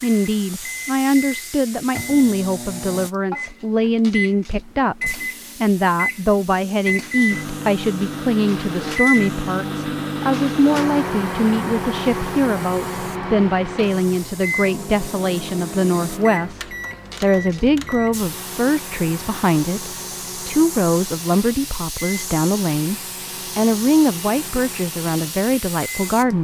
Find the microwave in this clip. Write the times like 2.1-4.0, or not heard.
0.0-26.3.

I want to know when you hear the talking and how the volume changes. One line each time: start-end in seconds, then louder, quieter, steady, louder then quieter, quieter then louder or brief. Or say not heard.
0.0-22.9 steady
23.6-26.3 brief.